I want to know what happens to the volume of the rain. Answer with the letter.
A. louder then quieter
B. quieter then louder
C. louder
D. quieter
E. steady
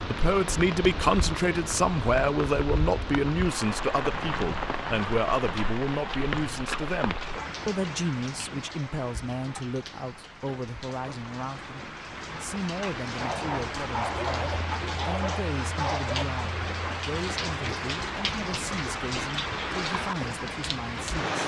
B.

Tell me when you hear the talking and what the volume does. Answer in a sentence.
You can hear the talking from 0.0 to 21.4 s, getting quieter.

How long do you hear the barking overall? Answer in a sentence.
The barking can be heard for 3 seconds in total.